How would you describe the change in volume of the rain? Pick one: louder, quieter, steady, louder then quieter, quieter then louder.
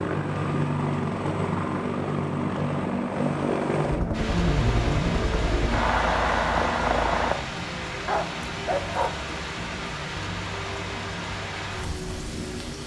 steady.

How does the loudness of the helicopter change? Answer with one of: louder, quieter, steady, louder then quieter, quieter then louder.
steady.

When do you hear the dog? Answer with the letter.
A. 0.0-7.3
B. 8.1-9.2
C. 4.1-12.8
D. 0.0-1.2
B.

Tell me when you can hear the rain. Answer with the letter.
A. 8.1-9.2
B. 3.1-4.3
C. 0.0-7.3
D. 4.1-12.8
D.